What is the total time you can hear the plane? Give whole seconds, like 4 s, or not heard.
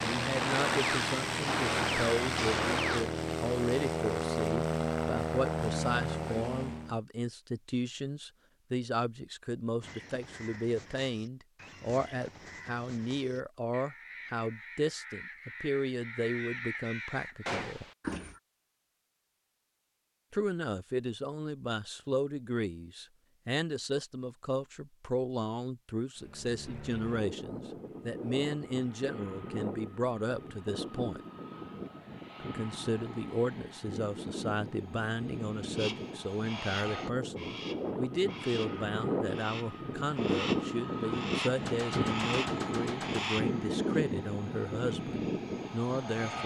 27 s.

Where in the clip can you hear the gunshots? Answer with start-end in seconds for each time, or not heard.
0.4-3.0, 17.4-17.9, 41.6-43.3.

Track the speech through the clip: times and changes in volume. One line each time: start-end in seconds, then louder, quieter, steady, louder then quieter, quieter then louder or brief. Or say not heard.
0.0-17.9 steady
20.3-31.2 steady
32.4-46.4 steady.